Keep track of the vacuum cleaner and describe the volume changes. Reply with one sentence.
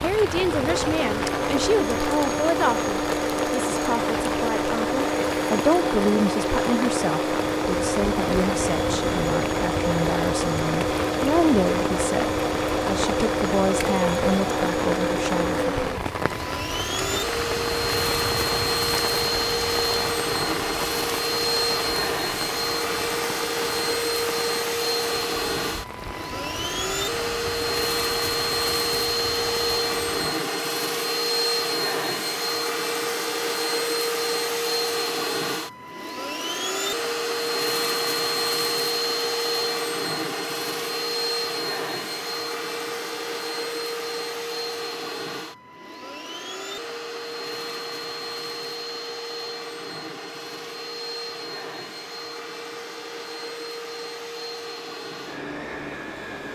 The volume of the vacuum cleaner goes down.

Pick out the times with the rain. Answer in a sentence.
The rain can be heard from 0.0 to 30.2 s.